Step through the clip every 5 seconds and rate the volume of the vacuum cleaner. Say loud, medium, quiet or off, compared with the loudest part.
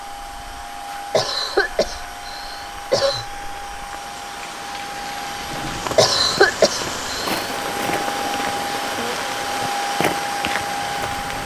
medium, loud, loud.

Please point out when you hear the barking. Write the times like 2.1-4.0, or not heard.
not heard.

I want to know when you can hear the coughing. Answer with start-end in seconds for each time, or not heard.
1.1-3.2, 6.0-7.5.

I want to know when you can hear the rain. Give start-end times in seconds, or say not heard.
0.0-11.2.